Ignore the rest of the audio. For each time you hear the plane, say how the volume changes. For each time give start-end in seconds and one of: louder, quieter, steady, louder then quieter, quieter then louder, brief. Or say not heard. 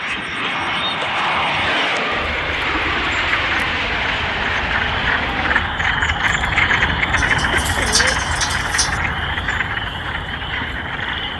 0.0-11.3 quieter.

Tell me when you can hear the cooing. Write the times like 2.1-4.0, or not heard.
1.6-3.1, 7.2-9.0.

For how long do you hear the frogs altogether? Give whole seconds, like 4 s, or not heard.
11 s.